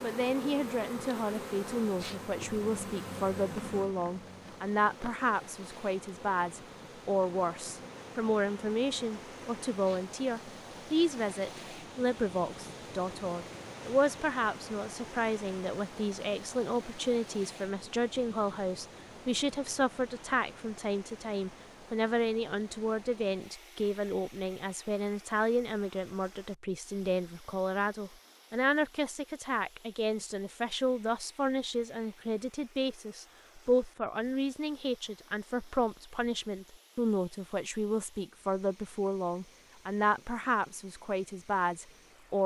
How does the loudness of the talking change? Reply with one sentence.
The loudness of the talking stays about the same.